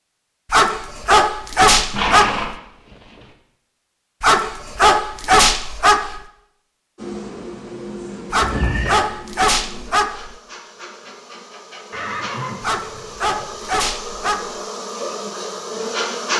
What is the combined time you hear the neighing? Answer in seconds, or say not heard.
4 s.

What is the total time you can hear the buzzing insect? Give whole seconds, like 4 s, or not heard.
9 s.